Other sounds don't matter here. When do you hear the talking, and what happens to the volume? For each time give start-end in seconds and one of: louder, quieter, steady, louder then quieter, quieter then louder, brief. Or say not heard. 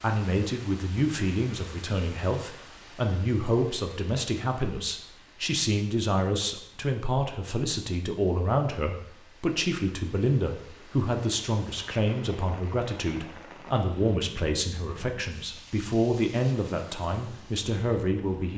0.0-18.5 steady.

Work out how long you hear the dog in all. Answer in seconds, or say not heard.
not heard.